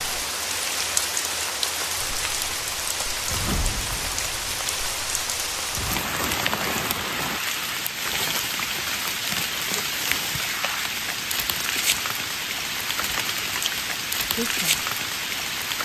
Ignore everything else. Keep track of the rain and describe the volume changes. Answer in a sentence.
The loudness of the rain stays about the same.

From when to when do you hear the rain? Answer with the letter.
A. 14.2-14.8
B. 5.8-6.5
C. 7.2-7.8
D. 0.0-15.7
D.